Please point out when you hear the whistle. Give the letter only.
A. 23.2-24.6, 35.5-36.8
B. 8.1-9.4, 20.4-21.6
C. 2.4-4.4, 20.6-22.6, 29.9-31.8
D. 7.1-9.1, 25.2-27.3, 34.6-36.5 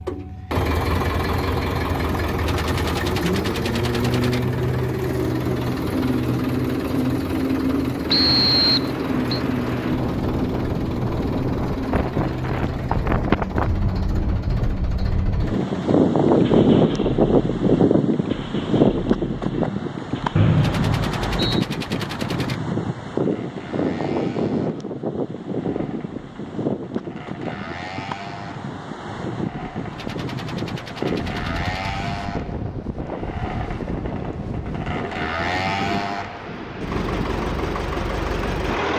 B.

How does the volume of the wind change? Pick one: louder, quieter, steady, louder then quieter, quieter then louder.
louder then quieter.